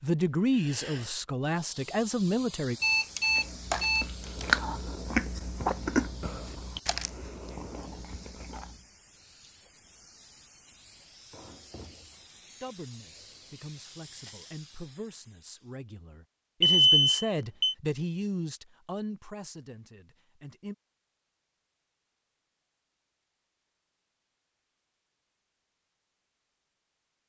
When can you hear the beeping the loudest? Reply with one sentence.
The loudest moment of the beeping is at 17 seconds.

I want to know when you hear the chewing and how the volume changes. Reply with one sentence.
The chewing can be heard from 3.3 to 8.8 s, getting quieter.